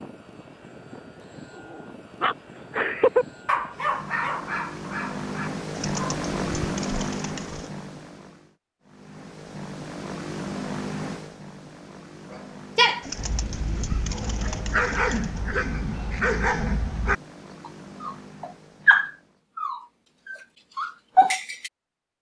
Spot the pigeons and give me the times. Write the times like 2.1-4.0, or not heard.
5.7-7.7, 13.0-15.4.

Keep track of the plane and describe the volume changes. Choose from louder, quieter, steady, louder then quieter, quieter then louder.
louder then quieter.